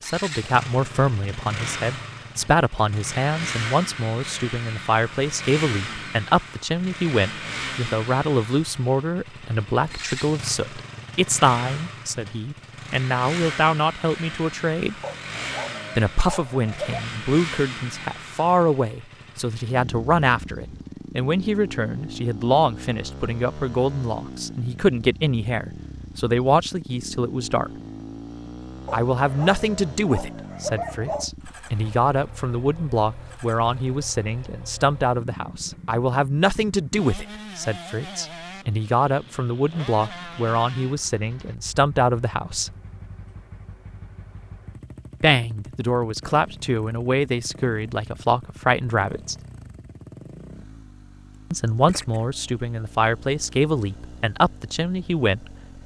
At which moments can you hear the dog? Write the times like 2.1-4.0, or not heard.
15.0-17.1, 28.9-31.3.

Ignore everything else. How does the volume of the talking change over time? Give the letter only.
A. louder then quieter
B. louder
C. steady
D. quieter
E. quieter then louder
C.